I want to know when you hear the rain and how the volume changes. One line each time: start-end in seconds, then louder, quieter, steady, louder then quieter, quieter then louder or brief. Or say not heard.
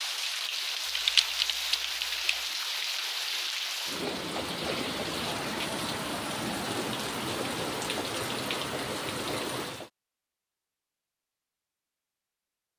0.0-9.9 steady.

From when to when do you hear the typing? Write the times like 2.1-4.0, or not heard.
0.9-2.2.